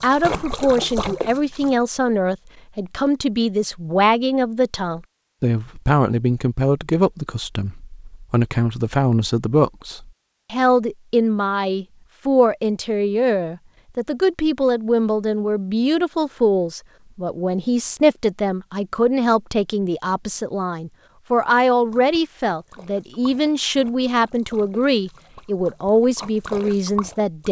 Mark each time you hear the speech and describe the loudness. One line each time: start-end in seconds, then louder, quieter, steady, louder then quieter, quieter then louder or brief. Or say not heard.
0.0-27.4 steady.